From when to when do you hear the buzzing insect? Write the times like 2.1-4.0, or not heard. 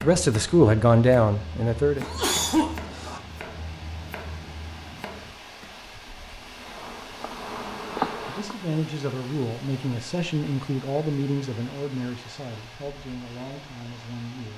6.6-8.6.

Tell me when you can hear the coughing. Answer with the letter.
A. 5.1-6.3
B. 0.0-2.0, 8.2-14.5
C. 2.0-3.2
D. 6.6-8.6
C.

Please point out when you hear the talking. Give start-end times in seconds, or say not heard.
0.0-2.0, 8.2-14.5.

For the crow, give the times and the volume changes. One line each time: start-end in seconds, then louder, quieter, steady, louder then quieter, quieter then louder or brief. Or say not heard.
not heard.